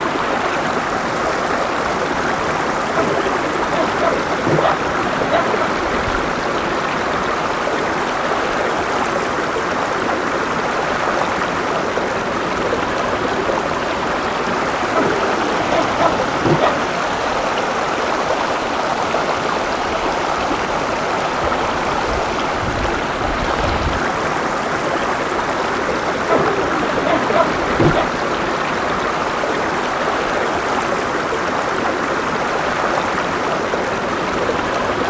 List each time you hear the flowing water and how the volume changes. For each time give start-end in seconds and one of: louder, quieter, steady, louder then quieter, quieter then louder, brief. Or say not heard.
0.0-35.0 steady.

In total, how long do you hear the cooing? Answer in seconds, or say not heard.
7 s.